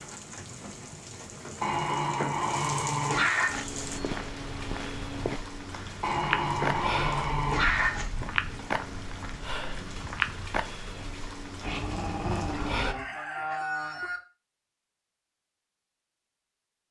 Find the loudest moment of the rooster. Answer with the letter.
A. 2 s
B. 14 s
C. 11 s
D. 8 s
B.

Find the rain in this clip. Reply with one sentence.
You can hear the rain from 0.0 to 12.9 s.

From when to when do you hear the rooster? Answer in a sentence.
The rooster can be heard from 12.3 to 14.2 s.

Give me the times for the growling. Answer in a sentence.
The growling can be heard from 1.6 to 3.6 s, from 6.0 to 8.1 s and from 11.6 to 13.1 s.